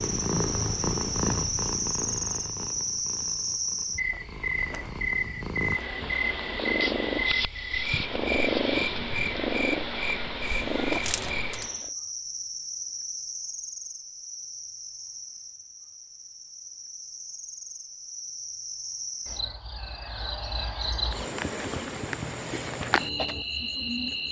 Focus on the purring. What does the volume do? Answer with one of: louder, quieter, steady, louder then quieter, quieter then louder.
quieter then louder.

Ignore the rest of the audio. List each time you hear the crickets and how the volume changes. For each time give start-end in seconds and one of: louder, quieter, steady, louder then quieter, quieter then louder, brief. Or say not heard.
0.0-24.2 quieter then louder.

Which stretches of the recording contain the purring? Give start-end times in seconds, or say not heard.
0.0-11.9.